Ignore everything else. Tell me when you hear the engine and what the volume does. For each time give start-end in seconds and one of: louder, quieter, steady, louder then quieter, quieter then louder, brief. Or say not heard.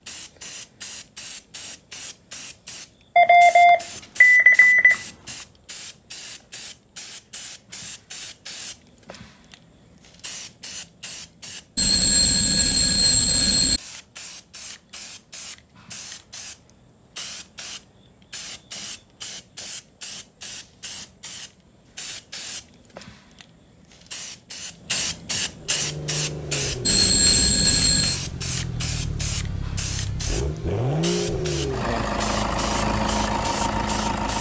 25.5-34.3 louder.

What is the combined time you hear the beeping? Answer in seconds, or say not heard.
5 s.